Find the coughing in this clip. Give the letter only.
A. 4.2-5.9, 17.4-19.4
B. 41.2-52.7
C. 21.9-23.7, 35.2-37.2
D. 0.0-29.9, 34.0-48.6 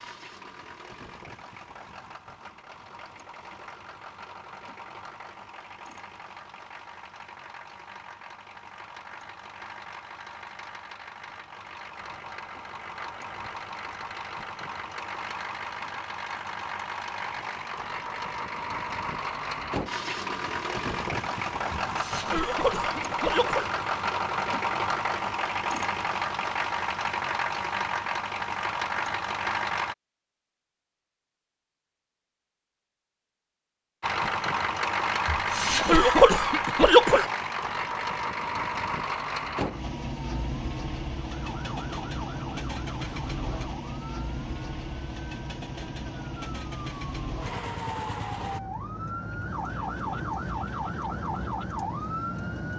C.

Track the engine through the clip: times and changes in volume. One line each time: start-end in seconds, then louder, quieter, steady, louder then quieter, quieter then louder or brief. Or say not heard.
0.0-29.9 louder
34.0-48.6 quieter.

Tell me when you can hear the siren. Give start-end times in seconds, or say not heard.
41.2-52.7.